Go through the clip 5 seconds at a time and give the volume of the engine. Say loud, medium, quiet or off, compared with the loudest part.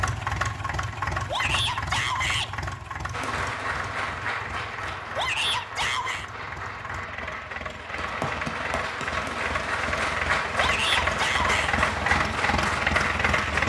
medium, medium, loud.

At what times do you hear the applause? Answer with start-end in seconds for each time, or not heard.
3.1-13.6.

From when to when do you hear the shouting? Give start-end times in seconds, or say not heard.
1.2-2.5, 5.2-6.2, 10.6-11.8.